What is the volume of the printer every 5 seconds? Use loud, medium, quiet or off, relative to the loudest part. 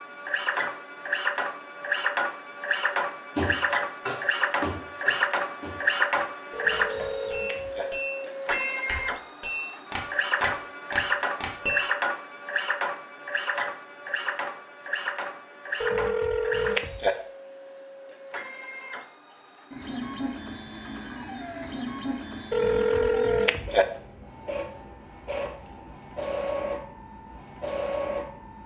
loud, loud, loud, medium, medium, medium.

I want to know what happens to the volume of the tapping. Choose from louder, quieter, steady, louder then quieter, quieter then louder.
quieter then louder.